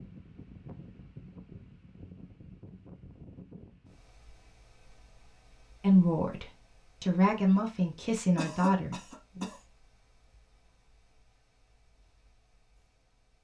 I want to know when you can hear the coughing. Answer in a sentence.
You can hear the coughing from 8.3 to 9.6 s.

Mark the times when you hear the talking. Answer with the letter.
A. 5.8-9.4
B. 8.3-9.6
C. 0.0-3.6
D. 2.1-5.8
A.